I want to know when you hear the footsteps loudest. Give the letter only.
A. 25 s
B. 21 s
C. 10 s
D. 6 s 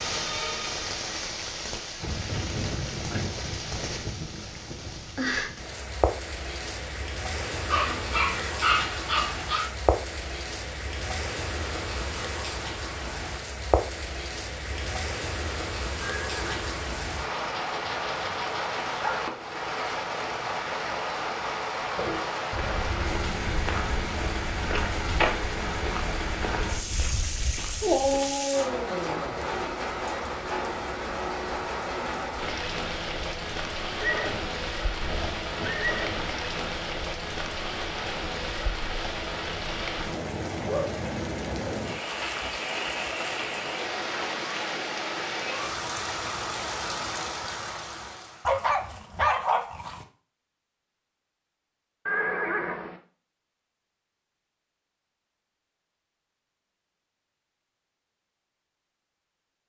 A.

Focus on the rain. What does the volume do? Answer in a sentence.
The loudness of the rain stays about the same.